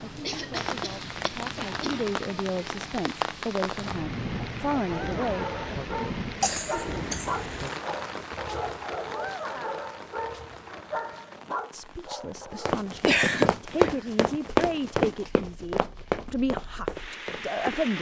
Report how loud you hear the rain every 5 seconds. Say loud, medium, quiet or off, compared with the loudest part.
loud, loud, quiet, medium.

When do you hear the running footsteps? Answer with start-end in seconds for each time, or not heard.
12.3-17.9.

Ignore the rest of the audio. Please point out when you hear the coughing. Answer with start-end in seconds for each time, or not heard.
0.2-2.0, 6.4-7.8, 13.1-14.4.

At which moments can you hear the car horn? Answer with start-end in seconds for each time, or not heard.
3.8-5.0.